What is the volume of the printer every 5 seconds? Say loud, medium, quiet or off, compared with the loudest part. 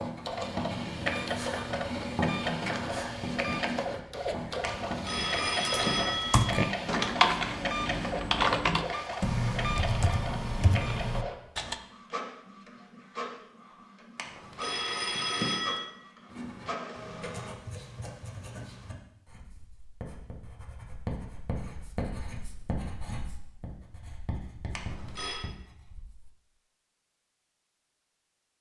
loud, loud, medium, medium, off, off.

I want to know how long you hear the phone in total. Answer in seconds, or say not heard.
4 s.